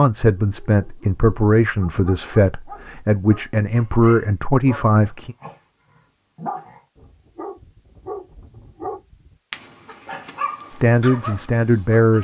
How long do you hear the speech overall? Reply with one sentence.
The speech can be heard for 7 seconds in total.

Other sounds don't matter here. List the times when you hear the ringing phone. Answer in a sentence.
You can't hear the ringing phone here.